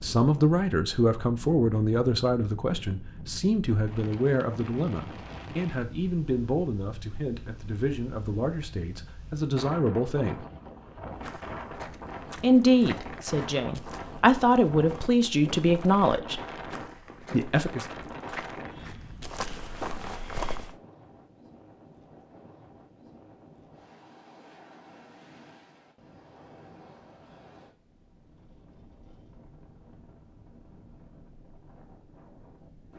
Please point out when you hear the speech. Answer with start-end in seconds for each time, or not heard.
0.0-10.4, 12.4-16.4, 17.3-17.9.